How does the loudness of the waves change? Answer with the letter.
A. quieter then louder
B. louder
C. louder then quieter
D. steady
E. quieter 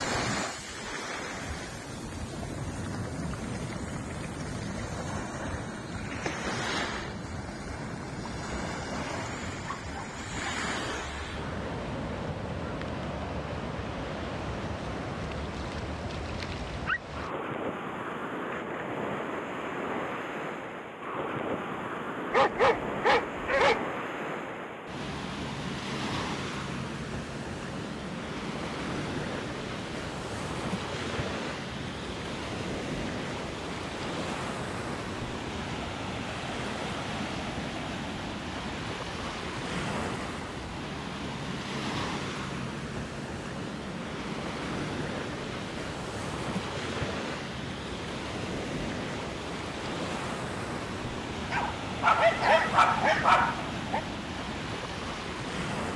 D.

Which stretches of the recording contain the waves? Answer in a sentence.
The waves can be heard from 0.0 to 55.9 s.